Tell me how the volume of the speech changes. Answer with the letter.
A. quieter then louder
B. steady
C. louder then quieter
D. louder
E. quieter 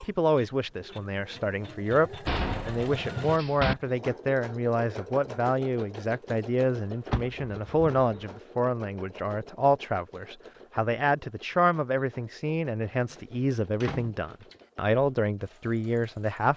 B.